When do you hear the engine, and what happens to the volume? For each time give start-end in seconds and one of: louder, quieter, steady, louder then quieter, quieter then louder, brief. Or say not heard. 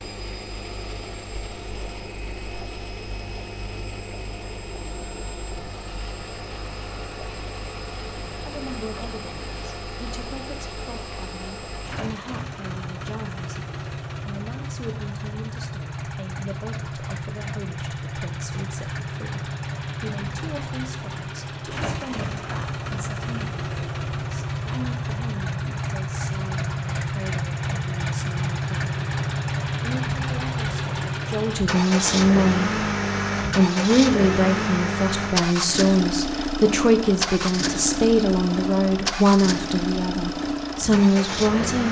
0.0-41.8 louder.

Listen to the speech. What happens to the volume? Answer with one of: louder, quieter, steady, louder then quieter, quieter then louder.
louder.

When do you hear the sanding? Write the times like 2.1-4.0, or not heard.
not heard.